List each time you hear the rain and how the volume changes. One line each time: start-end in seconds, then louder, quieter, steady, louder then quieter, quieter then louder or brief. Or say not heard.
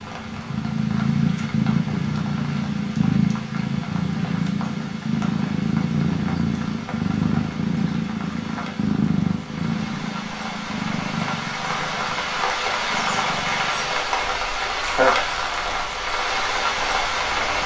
0.0-17.6 louder.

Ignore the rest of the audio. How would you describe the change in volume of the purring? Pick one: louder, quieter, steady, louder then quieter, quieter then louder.
quieter.